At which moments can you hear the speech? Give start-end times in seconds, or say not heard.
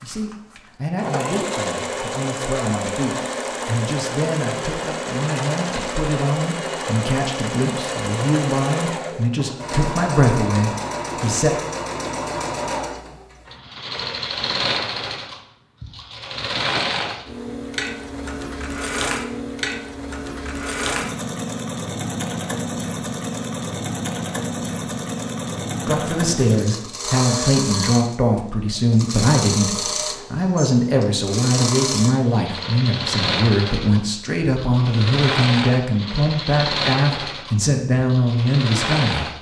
0.0-11.6, 25.9-39.3.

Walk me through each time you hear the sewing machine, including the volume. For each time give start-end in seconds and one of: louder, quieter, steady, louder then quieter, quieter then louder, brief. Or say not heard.
0.0-39.3 steady.